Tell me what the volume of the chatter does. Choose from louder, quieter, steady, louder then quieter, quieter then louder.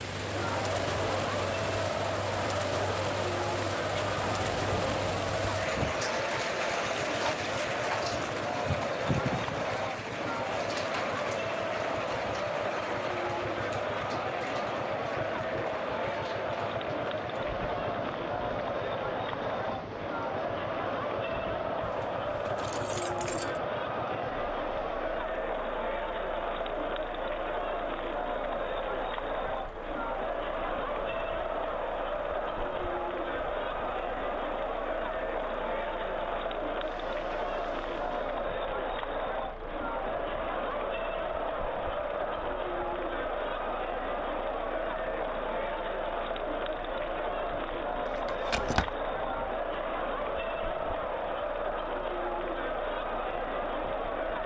steady.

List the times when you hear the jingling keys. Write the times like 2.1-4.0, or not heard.
3.9-5.2, 21.8-23.6, 48.0-48.9.